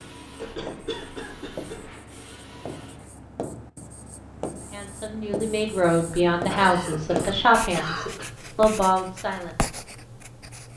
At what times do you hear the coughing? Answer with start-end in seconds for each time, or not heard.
0.3-1.9, 6.5-8.2.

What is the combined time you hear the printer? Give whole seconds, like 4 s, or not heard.
3 s.